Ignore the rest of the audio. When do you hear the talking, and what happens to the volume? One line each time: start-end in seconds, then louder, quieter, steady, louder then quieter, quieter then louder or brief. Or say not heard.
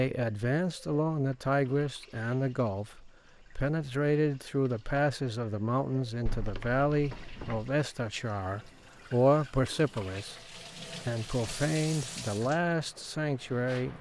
0.0-10.4 steady
11.1-13.9 brief.